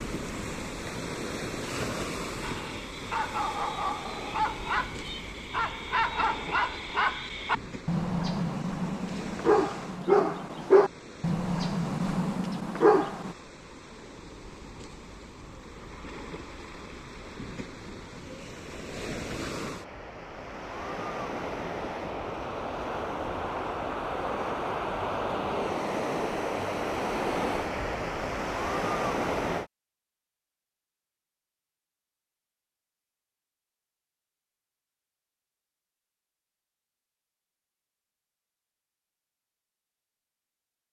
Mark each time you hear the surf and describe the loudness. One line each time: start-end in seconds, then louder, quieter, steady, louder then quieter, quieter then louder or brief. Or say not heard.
0.0-29.7 quieter then louder.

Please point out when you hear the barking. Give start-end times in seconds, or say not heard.
2.4-13.3.